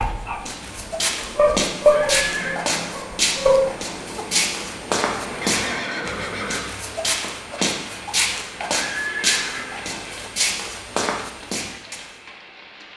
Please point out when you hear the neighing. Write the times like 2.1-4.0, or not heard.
1.9-2.7, 5.4-6.7, 8.7-10.4.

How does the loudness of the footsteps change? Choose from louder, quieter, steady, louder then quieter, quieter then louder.
steady.